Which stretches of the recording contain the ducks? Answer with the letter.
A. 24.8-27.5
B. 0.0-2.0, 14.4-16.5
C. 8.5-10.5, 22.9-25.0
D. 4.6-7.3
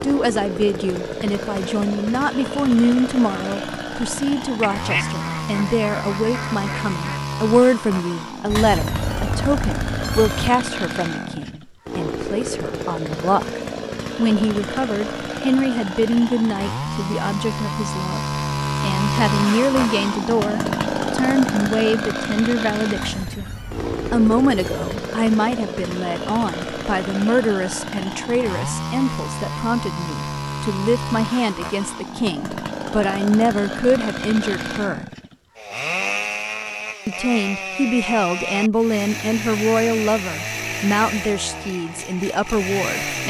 D.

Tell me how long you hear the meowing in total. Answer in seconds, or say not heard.
4 s.